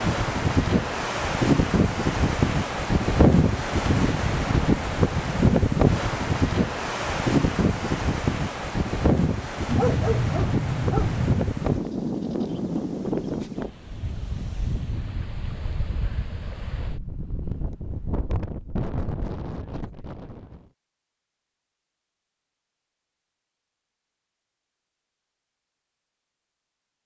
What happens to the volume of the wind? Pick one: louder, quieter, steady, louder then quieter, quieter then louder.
quieter.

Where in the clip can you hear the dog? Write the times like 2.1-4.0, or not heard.
9.7-11.4.